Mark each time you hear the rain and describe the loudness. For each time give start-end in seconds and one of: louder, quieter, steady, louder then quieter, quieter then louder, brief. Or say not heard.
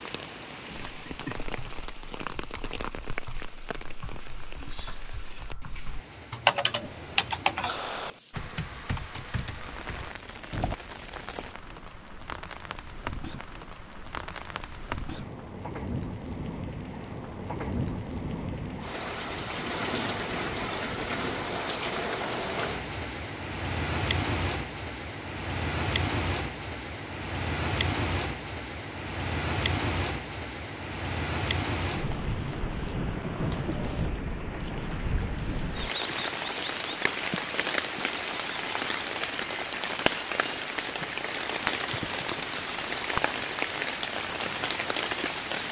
0.0-45.6 louder.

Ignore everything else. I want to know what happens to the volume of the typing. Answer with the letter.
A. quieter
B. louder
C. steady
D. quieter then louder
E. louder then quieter
E.